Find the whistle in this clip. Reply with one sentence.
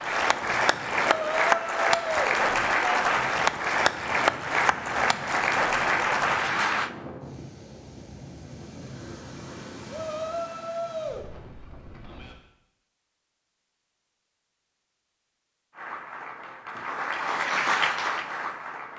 The whistle can't be heard in this clip.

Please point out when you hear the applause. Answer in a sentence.
The applause can be heard from 0.0 to 6.9 s and from 15.8 to 18.9 s.